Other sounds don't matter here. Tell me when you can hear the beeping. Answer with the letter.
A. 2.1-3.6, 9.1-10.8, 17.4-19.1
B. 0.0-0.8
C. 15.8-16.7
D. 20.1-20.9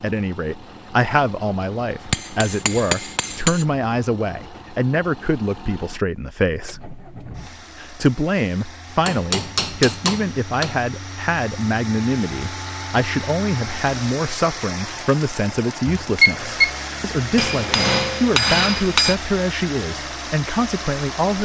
C.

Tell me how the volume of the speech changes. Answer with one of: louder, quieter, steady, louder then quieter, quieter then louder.
steady.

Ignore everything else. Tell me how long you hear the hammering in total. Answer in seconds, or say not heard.
5 s.